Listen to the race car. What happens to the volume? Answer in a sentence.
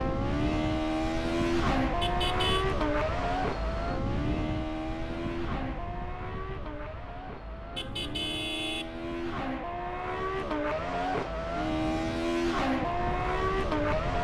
The volume of the race car goes down, then up.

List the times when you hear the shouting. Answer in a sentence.
The shouting can't be heard in this clip.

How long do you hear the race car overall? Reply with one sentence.
You can hear the race car for 14 seconds altogether.